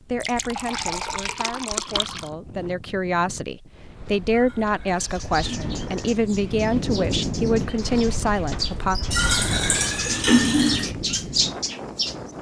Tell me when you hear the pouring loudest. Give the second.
10 s.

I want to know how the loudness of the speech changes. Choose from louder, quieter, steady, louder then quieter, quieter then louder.
louder.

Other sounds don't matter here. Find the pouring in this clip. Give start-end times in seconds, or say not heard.
0.2-2.2, 4.2-6.1, 9.1-10.9.